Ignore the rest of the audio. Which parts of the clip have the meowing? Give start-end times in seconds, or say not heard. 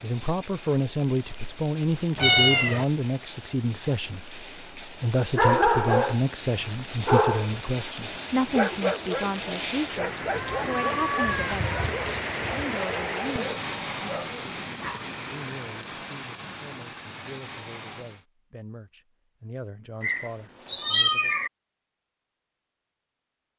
2.1-2.9, 10.3-11.8, 20.0-21.5.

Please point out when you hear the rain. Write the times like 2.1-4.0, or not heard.
0.0-18.2.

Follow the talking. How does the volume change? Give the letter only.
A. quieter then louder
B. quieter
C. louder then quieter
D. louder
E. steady
B.